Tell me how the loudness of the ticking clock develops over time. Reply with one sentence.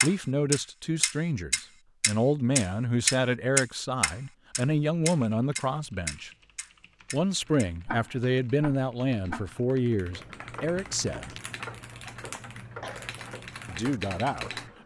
The loudness of the ticking clock goes down.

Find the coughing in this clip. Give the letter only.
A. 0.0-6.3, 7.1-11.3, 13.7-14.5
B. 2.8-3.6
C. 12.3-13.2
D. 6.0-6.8
C.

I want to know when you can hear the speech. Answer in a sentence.
The speech can be heard from 0.0 to 6.3 s, from 7.1 to 11.3 s and from 13.7 to 14.5 s.